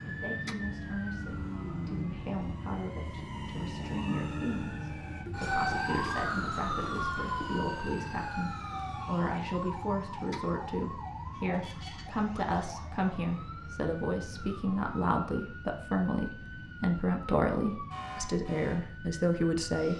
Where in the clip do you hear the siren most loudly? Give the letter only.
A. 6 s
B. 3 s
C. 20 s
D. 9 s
A.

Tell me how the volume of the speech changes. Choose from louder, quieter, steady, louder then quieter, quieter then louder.
louder.